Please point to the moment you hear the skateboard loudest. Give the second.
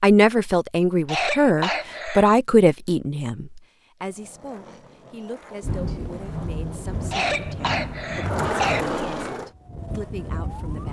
9 s.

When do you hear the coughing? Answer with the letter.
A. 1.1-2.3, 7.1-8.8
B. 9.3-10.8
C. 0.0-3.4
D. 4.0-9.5
A.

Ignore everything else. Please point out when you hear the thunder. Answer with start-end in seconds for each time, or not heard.
5.6-8.9.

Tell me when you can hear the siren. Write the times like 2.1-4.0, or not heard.
9.3-10.8.